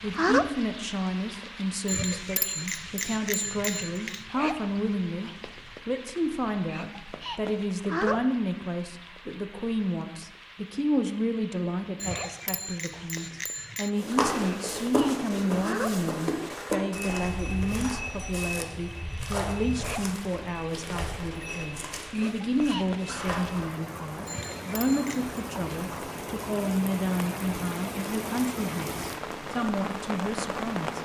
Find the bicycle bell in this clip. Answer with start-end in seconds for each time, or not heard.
1.9-4.2, 11.9-13.9, 24.2-25.4.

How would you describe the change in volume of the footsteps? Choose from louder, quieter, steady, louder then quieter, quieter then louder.
quieter.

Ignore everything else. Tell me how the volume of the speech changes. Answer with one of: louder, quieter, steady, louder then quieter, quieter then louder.
steady.